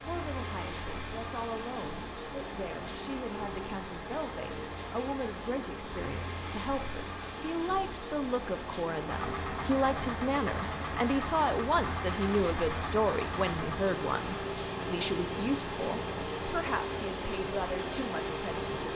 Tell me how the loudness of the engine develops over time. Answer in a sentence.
The volume of the engine stays about the same.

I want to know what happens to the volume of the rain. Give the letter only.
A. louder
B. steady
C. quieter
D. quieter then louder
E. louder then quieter
B.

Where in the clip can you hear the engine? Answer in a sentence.
The engine can be heard from 9.1 to 18.9 s.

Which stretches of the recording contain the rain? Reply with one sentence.
The rain can be heard from 0.0 to 18.9 s.